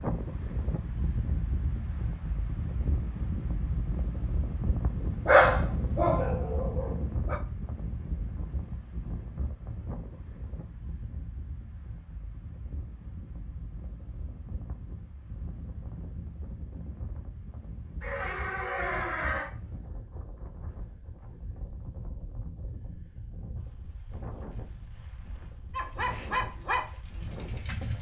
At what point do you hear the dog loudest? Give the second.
5 s.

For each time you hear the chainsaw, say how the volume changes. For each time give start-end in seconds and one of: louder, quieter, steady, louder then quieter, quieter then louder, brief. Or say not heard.
not heard.